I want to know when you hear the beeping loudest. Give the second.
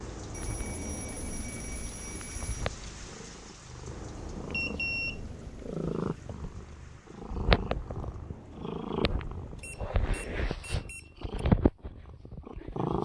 5 s.